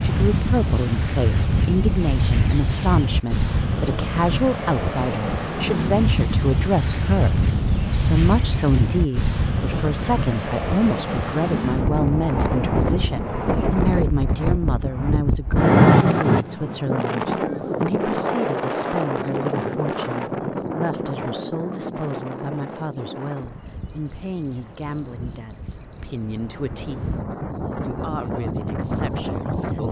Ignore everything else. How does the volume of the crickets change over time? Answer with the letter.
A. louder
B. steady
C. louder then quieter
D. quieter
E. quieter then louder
A.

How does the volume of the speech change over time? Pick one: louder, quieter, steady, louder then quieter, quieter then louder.
quieter.